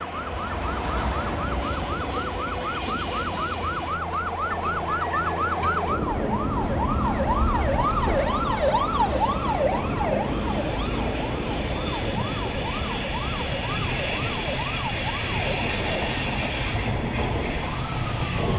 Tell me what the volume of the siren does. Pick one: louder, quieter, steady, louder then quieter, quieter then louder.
louder then quieter.